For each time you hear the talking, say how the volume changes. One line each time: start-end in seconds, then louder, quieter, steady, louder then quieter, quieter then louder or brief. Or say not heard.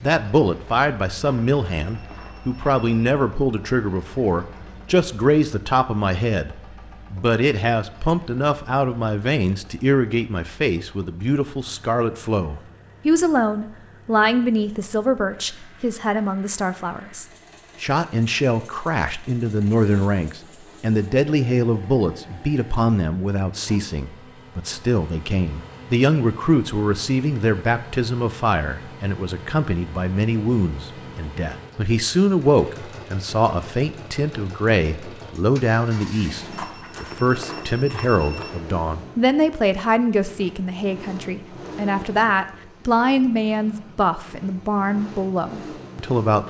0.0-46.4 steady.